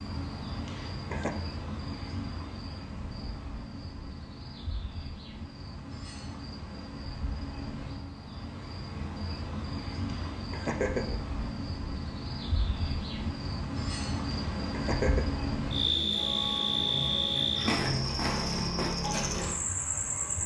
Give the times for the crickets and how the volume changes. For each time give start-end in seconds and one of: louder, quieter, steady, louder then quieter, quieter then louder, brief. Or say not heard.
0.0-20.4 louder.